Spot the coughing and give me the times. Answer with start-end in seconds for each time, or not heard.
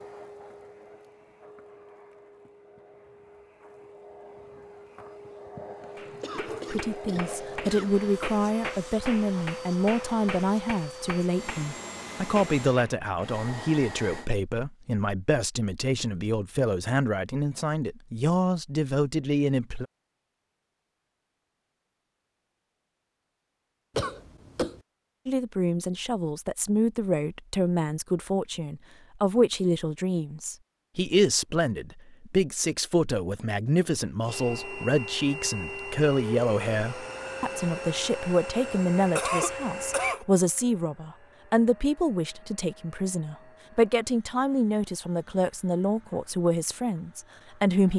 6.2-8.0, 23.9-24.8, 39.1-40.2.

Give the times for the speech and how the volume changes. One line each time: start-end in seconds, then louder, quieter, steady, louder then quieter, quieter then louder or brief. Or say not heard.
6.7-19.9 steady
25.2-47.9 steady.